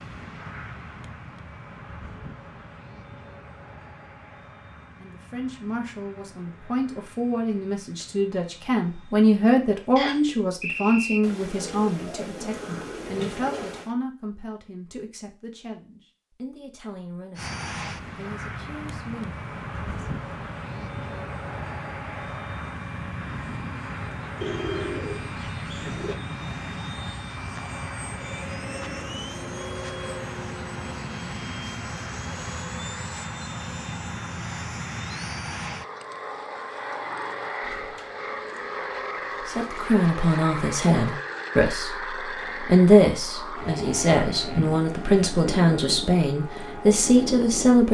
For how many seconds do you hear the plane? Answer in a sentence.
The plane can be heard for 41 seconds in total.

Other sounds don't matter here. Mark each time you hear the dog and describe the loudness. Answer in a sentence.
You can't hear the dog here.